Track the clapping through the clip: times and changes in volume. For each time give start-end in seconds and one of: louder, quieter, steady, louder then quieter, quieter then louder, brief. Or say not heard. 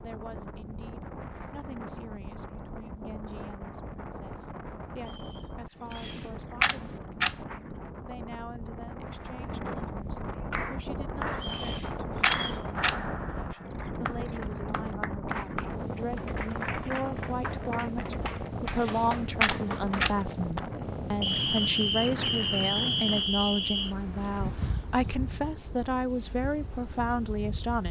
10.5-11.5 brief
12.3-20.6 steady.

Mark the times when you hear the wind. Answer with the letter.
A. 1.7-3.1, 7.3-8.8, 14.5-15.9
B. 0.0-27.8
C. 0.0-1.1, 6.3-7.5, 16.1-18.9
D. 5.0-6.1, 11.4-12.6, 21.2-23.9
B.